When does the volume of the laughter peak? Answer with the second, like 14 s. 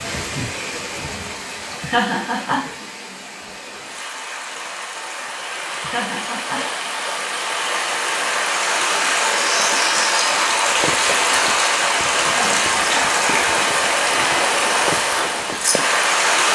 2 s.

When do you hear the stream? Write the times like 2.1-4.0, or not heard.
0.0-16.4.